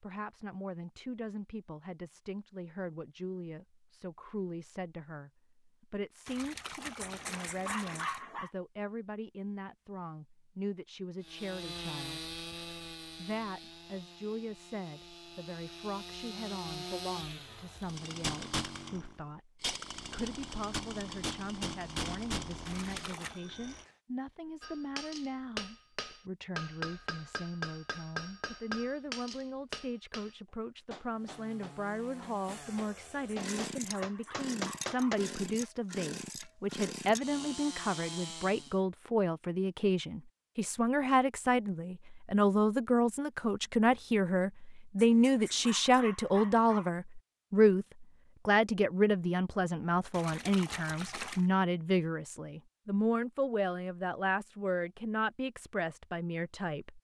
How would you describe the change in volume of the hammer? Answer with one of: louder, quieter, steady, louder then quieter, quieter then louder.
quieter then louder.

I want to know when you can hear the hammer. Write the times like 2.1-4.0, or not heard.
24.6-35.2.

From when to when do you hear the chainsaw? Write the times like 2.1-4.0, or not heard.
11.2-23.9, 31.1-38.8.